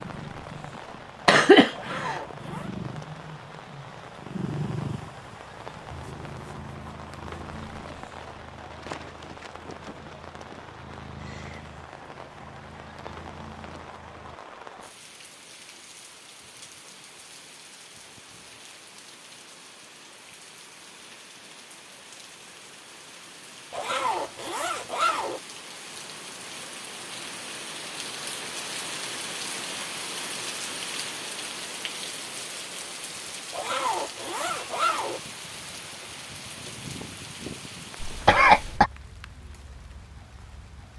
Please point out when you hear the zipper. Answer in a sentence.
The zipper can be heard from 1.7 to 2.7 s, from 23.7 to 25.4 s and from 33.5 to 35.2 s.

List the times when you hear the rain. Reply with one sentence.
The rain can be heard from 0.0 to 40.9 s.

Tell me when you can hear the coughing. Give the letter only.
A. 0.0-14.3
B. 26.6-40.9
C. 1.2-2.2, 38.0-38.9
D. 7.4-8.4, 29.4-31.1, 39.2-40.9
C.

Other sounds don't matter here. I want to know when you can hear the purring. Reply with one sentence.
You can hear the purring from 0.0 to 14.3 s.